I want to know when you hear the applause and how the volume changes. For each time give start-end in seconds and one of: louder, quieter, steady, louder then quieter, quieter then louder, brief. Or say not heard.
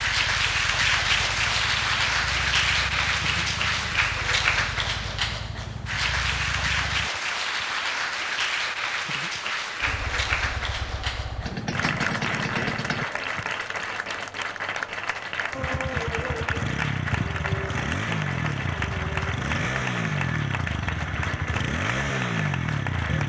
0.0-23.2 quieter.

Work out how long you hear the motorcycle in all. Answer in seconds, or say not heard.
18 s.